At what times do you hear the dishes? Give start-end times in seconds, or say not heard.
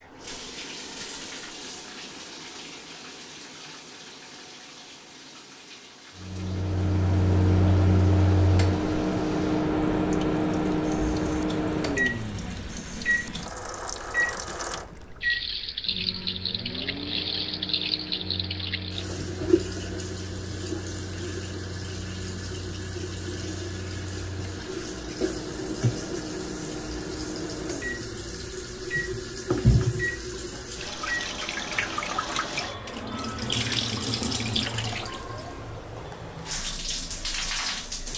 not heard.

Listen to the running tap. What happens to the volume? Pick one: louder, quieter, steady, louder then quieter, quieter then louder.
louder.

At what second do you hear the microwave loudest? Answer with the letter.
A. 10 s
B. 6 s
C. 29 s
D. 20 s
A.